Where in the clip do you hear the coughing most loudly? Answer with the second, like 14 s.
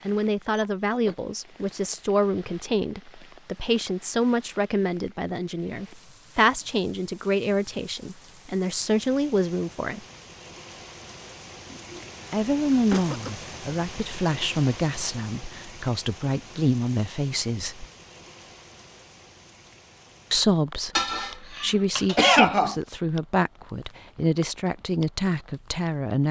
22 s.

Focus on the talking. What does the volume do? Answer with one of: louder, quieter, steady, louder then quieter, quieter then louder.
steady.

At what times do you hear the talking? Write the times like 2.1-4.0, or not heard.
0.1-10.0, 12.3-17.9, 20.3-26.2.